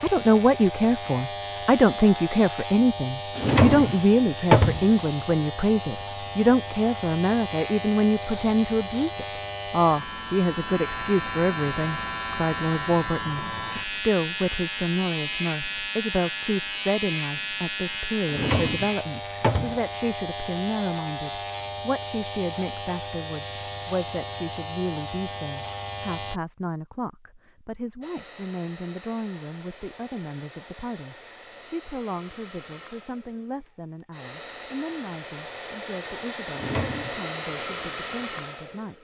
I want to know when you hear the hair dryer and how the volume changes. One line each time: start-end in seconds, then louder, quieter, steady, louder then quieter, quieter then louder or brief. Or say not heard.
28.0-39.0 louder.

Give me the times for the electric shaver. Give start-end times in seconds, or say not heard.
0.0-26.4.